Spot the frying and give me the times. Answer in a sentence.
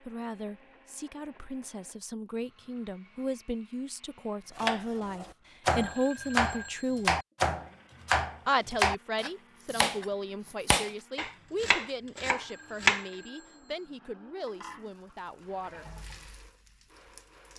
The frying can be heard from 14.4 to 17.5 s.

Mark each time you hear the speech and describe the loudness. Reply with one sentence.
You can hear the speech from 0.0 to 7.2 s, getting louder; and from 8.4 to 15.8 s, getting quieter.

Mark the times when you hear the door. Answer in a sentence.
You can't hear the door here.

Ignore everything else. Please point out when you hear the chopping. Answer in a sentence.
You can hear the chopping from 4.5 to 13.1 s.